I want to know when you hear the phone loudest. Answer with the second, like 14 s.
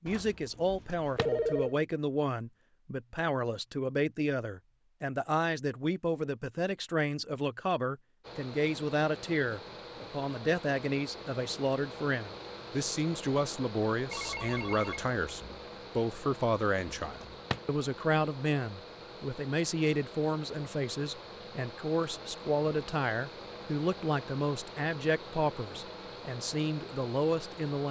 1 s.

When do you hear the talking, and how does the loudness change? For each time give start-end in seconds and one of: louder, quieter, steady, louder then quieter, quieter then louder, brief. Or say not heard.
0.0-27.8 steady.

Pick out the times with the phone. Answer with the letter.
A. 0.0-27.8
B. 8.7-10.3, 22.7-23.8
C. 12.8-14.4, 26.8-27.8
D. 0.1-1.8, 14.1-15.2
D.